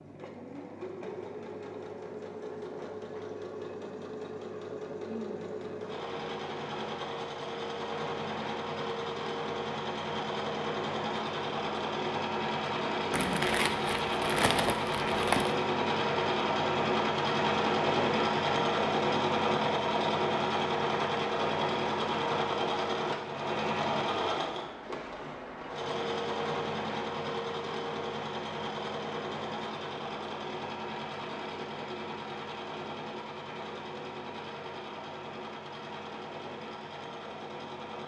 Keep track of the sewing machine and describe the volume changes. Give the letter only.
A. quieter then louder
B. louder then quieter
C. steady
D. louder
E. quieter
B.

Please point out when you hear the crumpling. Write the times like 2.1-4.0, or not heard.
13.1-15.6.